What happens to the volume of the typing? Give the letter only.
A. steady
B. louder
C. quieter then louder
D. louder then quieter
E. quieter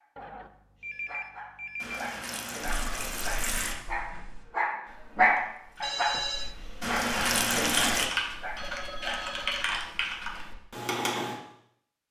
C.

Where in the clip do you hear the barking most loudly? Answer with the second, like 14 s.
5 s.